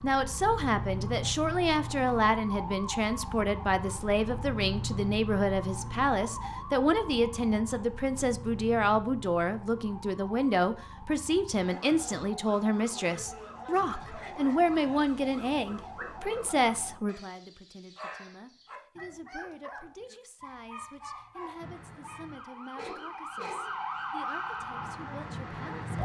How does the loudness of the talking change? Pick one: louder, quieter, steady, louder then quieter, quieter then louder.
quieter.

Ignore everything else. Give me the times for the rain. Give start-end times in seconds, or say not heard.
not heard.